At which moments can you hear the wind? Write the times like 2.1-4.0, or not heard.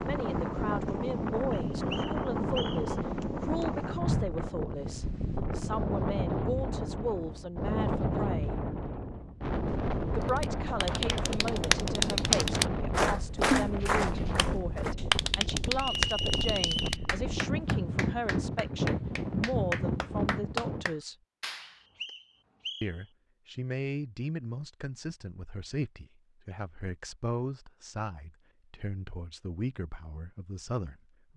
0.0-20.9.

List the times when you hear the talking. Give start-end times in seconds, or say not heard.
0.0-8.6, 10.2-21.1, 22.8-31.3.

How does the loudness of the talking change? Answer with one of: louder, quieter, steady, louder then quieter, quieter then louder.
steady.